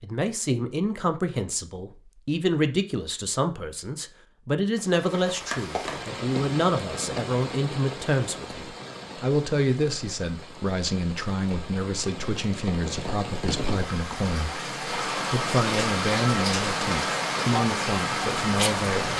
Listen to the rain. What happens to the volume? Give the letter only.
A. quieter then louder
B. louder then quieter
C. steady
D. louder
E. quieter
A.